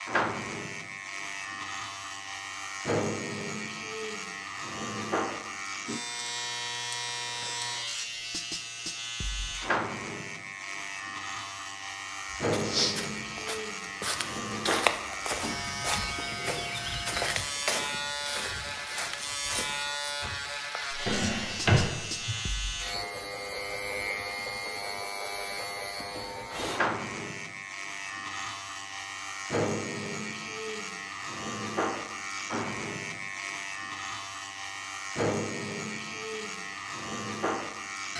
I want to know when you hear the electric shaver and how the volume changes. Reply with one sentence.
The electric shaver can be heard from 0.0 to 38.1 s, at a steady volume.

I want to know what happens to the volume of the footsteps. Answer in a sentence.
The loudness of the footsteps goes down.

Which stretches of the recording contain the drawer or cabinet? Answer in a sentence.
The drawer or cabinet can be heard from 21.1 to 22.4 s.